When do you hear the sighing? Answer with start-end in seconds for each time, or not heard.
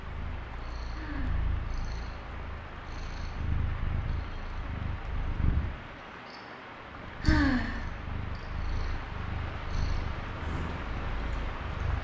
0.9-1.4, 7.2-7.8.